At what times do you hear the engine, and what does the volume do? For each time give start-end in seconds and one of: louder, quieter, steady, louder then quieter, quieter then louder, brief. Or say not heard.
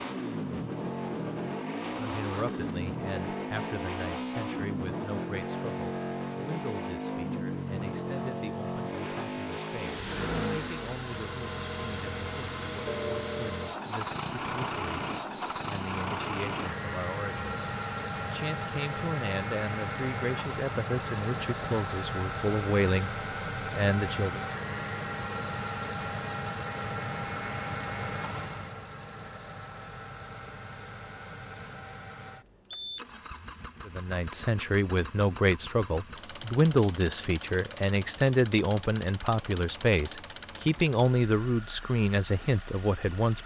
0.0-43.4 quieter.